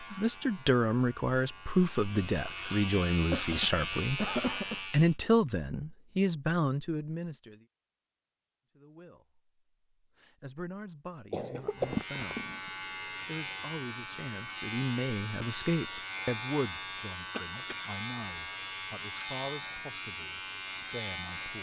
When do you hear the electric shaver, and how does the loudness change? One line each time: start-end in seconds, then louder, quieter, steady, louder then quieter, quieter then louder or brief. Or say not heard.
0.0-5.2 louder
11.7-21.5 steady.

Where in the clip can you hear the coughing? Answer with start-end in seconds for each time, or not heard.
3.1-4.8, 11.3-12.6, 17.3-17.8.